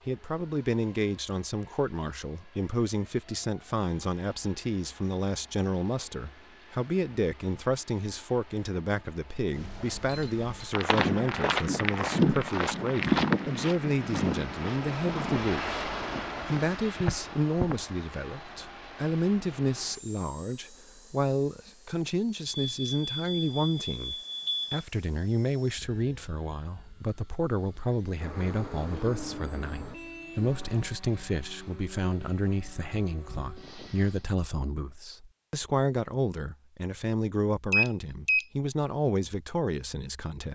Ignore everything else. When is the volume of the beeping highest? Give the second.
38 s.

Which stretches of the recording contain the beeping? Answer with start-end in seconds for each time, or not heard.
9.5-10.7, 22.4-24.9, 37.7-38.5.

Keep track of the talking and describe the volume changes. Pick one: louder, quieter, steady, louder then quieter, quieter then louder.
steady.